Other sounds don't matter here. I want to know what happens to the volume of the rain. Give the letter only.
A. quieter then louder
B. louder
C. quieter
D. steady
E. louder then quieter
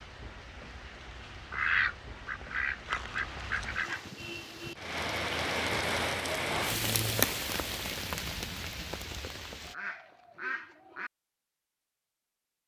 E.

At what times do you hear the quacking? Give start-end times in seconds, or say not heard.
1.5-4.1, 9.7-11.1.